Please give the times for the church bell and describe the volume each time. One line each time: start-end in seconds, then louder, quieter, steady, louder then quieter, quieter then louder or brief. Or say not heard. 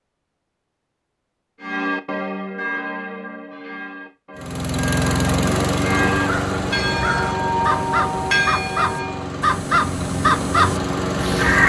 1.6-9.3 quieter then louder.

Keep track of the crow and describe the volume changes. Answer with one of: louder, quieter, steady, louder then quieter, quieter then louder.
louder.